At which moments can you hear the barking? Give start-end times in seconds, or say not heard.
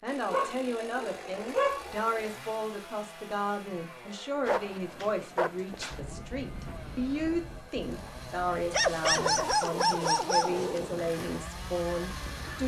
0.2-1.9, 4.5-6.0, 8.7-10.9.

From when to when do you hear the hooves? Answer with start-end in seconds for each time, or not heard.
not heard.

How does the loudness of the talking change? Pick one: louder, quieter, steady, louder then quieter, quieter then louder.
steady.